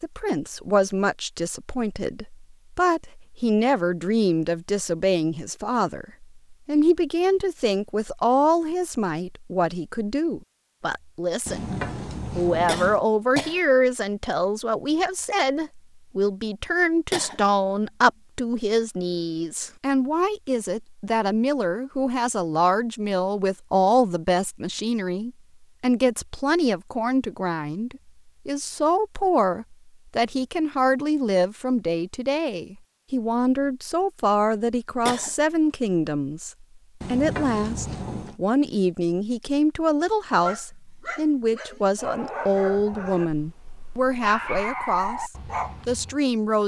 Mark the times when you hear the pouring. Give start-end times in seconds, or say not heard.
11.4-13.0, 37.0-38.4.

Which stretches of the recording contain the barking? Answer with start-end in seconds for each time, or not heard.
40.4-46.1.